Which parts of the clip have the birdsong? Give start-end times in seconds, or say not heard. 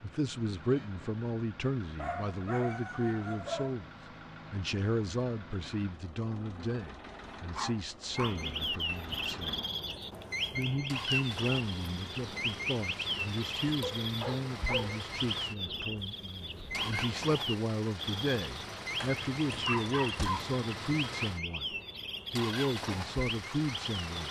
8.1-24.2.